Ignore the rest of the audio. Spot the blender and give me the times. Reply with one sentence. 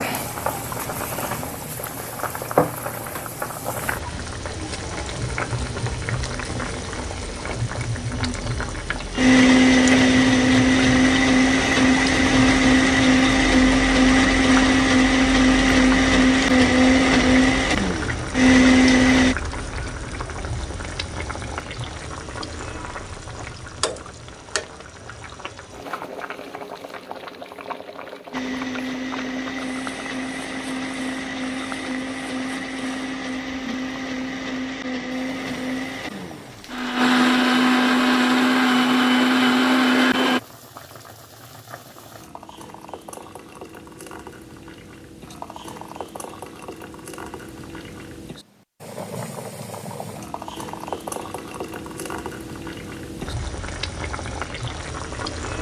The blender can be heard from 9.1 to 19.4 s and from 28.3 to 40.4 s.